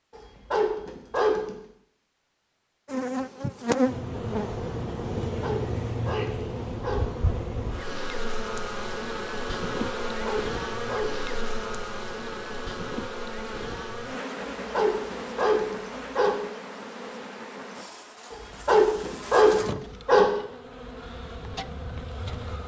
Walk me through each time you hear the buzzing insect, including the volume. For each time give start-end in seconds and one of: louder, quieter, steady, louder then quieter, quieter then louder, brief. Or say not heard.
2.9-22.6 quieter.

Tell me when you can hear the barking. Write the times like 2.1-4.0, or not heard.
0.1-1.6, 5.2-7.0, 10.1-11.3, 14.6-16.4, 18.3-20.3.